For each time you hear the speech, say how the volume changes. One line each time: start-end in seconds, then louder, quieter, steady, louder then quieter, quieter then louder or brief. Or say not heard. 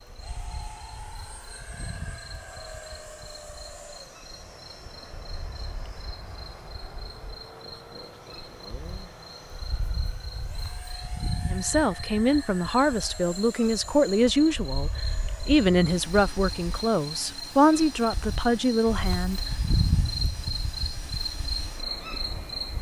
11.4-19.4 steady.